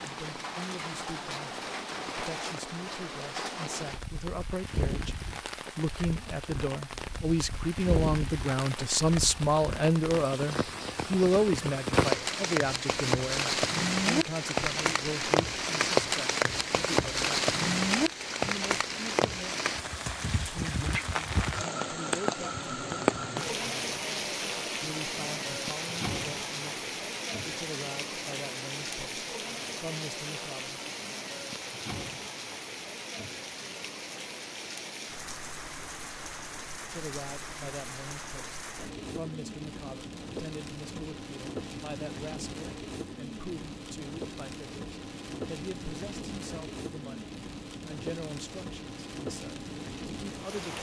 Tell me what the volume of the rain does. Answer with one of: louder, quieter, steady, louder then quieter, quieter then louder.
louder then quieter.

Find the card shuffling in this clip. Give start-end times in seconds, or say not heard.
not heard.